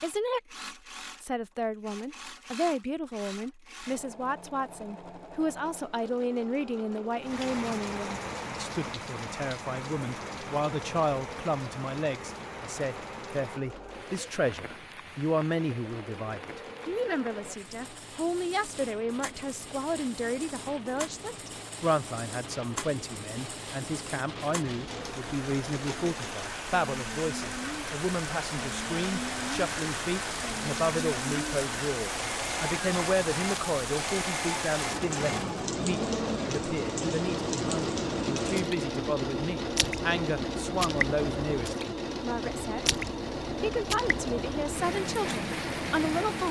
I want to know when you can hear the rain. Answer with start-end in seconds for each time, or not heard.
7.2-46.4.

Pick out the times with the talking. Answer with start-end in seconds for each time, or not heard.
0.0-0.4, 1.2-46.4.